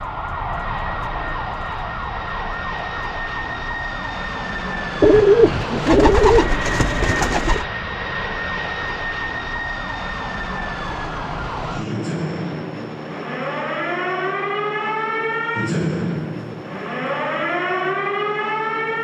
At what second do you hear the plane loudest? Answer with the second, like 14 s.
7 s.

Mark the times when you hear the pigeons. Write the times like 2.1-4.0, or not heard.
5.0-7.7.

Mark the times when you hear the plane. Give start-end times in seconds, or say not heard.
0.0-18.9.